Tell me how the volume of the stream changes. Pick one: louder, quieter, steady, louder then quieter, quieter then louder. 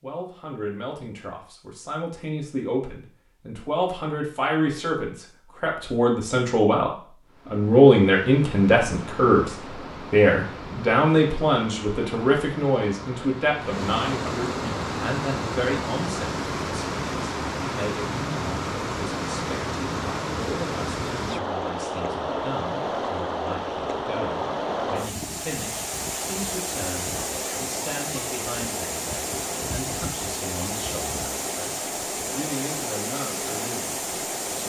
louder.